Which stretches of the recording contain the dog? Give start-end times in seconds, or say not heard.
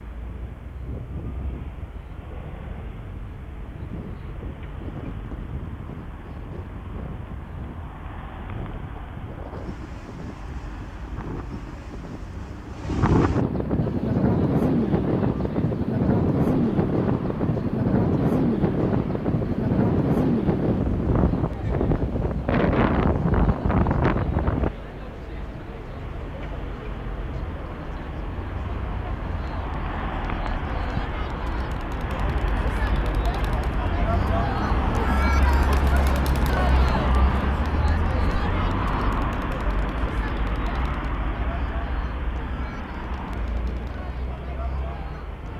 not heard.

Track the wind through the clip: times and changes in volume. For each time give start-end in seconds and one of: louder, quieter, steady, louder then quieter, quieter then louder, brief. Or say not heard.
0.1-24.7 louder.